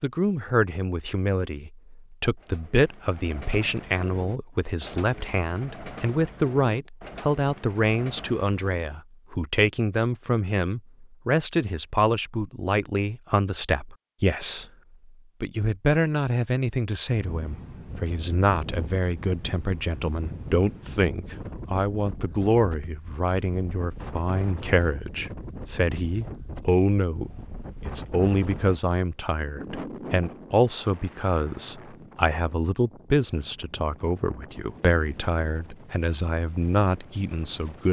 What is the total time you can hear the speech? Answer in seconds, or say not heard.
37 s.